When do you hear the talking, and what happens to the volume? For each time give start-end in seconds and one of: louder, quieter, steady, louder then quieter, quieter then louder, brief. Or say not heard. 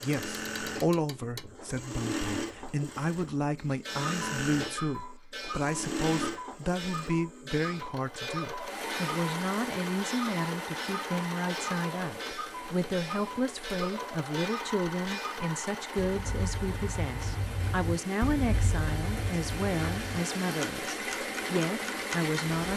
0.0-22.7 steady.